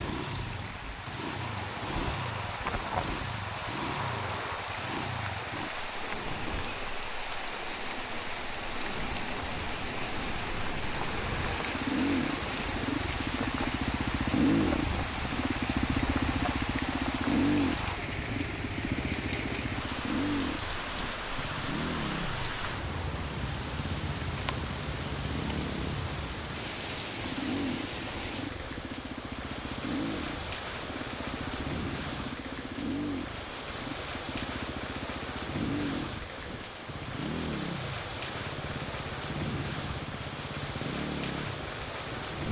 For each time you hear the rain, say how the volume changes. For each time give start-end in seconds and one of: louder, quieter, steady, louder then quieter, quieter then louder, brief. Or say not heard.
0.0-42.4 steady.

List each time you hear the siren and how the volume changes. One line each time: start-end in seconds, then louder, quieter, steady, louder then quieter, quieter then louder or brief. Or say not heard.
not heard.